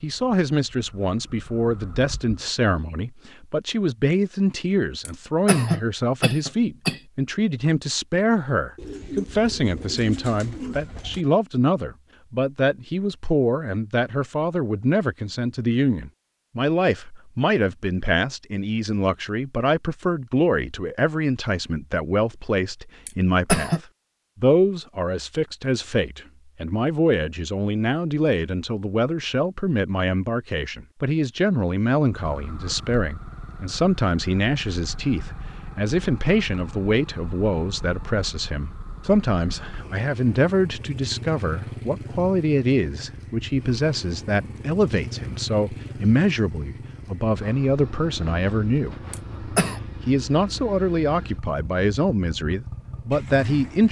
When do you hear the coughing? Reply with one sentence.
You can hear the coughing from 5.0 to 7.0 s, from 23.1 to 23.8 s and from 49.1 to 49.8 s.